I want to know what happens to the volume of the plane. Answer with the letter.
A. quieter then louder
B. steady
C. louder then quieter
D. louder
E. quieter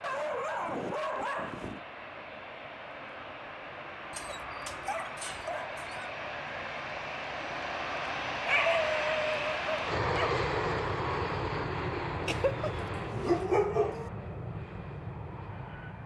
C.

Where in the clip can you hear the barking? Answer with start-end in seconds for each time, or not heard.
0.0-1.8, 4.1-6.1, 8.4-10.3, 12.2-14.1.